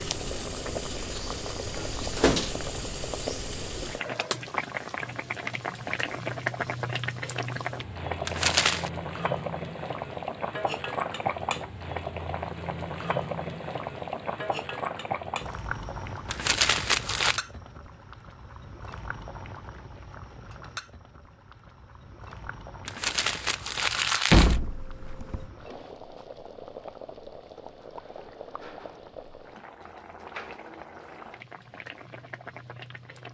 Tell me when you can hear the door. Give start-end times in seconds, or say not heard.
1.8-2.5, 24.3-25.4.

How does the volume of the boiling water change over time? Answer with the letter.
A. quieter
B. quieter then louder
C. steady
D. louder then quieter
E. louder
A.